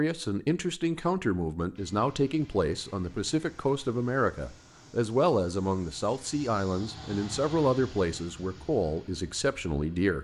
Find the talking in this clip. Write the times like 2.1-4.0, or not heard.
0.0-10.1.